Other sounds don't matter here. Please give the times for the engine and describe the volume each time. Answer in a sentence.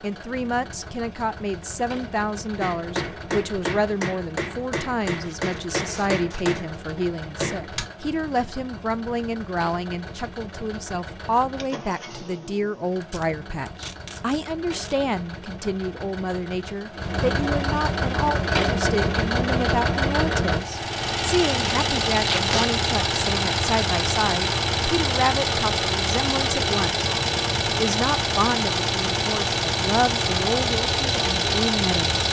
You can hear the engine from 0.0 to 32.2 s, getting louder.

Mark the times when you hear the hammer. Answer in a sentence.
You can hear the hammer from 2.6 to 7.8 s.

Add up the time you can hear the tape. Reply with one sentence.
The tape can be heard for 4 seconds in total.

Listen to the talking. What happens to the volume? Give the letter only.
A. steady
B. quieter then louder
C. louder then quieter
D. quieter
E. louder
A.